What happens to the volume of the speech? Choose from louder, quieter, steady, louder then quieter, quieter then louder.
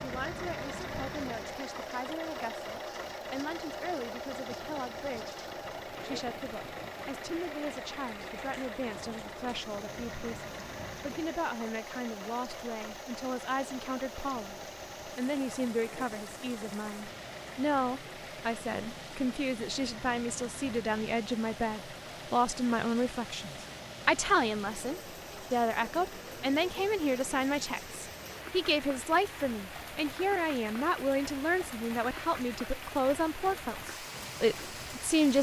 louder.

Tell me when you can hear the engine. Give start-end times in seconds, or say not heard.
0.0-35.1.